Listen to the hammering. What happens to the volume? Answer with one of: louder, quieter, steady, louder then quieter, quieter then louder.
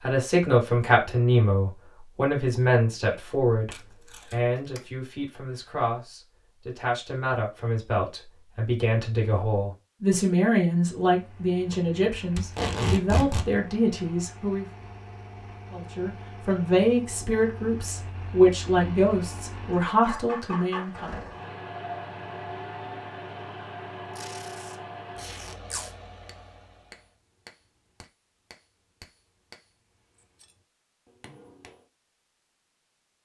quieter then louder.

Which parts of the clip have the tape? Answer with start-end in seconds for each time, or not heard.
3.7-4.8, 12.3-13.5, 24.1-25.9.